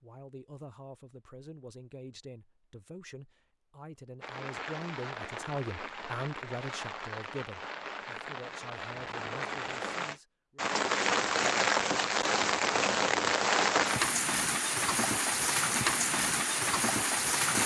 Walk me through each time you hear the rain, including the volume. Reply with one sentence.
You can hear the rain from 4.2 to 17.6 s, getting louder.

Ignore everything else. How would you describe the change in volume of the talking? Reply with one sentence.
The volume of the talking goes up, then down.